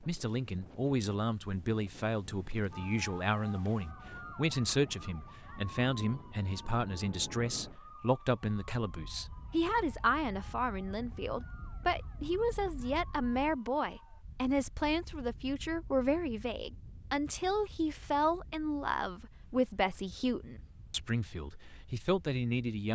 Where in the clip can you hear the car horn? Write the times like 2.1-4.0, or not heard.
not heard.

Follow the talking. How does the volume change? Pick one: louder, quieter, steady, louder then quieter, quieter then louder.
steady.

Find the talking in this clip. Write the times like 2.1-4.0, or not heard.
0.0-22.9.